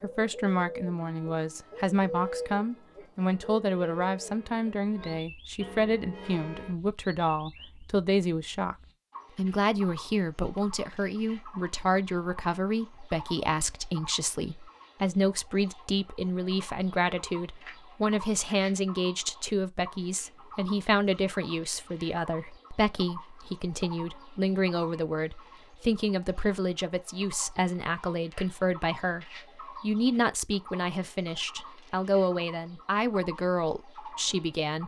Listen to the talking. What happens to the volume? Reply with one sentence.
The loudness of the talking stays about the same.